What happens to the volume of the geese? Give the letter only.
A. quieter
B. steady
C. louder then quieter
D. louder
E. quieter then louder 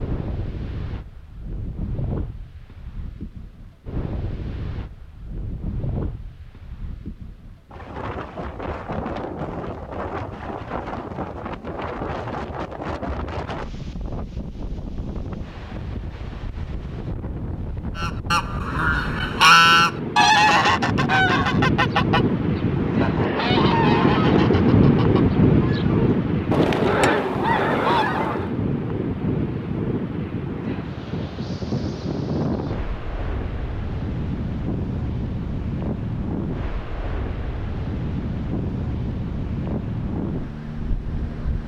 E.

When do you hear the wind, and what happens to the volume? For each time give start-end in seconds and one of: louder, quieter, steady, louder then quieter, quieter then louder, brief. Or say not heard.
0.0-41.6 louder then quieter.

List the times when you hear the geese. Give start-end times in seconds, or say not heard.
17.9-28.5.